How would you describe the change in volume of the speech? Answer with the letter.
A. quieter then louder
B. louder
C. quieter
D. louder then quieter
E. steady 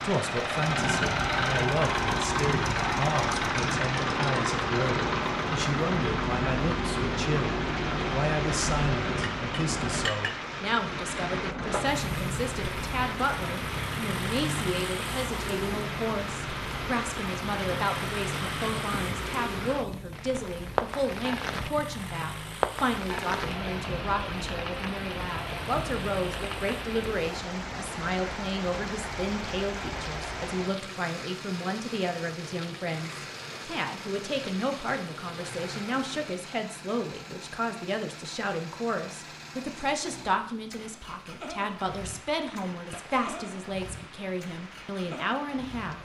E.